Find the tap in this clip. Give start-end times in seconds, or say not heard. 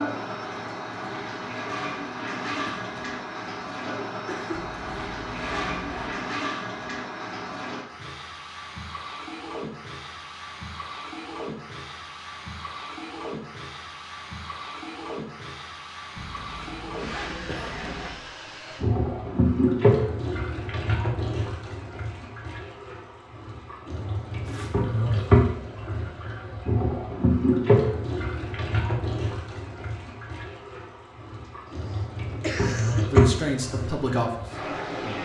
0.0-35.2.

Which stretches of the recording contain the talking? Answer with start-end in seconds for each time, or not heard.
33.1-35.2.